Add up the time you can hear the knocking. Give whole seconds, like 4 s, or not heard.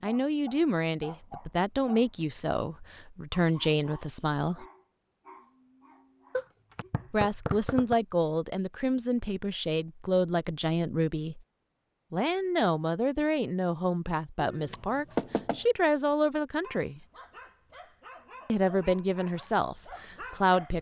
3 s.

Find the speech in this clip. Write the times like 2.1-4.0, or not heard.
0.0-4.7, 7.1-11.4, 12.1-17.0, 18.4-20.7.